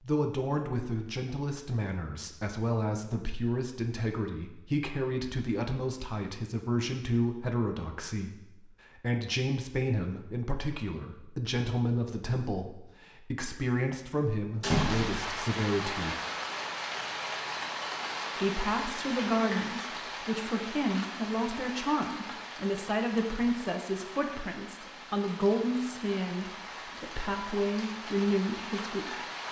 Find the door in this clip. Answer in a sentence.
You can hear the door from 14.6 to 15.4 s.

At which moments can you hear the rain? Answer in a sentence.
You can hear the rain from 14.7 to 29.4 s.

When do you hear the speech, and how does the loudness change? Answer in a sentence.
You can hear the speech from 0.0 to 16.1 s, at a steady volume; and from 18.4 to 29.1 s, at a steady volume.